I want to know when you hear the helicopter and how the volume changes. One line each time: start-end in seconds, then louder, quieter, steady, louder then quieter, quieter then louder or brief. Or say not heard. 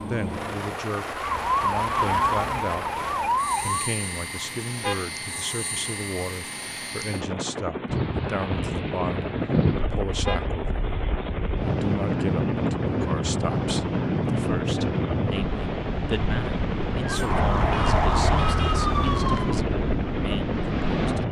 0.0-21.2 steady.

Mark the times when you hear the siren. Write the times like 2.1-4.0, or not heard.
0.0-3.9, 17.0-19.6.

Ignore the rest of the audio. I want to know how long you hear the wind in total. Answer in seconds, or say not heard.
13 s.